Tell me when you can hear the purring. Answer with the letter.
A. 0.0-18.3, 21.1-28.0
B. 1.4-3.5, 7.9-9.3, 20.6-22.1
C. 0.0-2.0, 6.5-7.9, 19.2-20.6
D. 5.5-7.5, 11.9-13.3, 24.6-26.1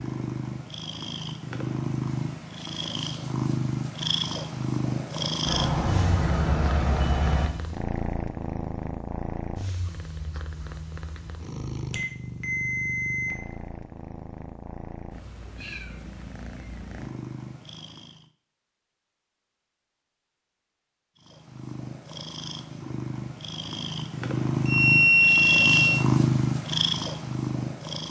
A.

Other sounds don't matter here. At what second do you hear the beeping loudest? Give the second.
25 s.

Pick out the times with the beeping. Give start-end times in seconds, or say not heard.
5.5-7.5, 11.9-13.3, 24.6-26.1.